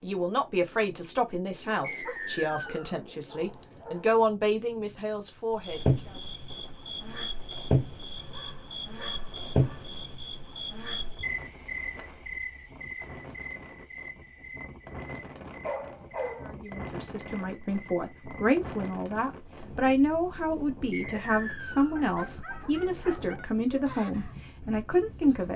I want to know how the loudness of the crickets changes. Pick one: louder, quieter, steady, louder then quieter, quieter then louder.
quieter.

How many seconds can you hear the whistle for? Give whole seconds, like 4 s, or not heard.
2 s.